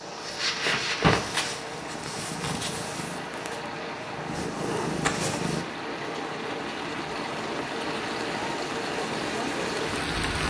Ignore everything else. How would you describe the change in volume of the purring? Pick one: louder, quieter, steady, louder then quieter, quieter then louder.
quieter then louder.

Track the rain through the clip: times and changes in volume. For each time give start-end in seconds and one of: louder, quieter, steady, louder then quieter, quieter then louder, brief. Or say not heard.
0.0-10.4 louder.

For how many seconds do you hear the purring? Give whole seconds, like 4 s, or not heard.
6 s.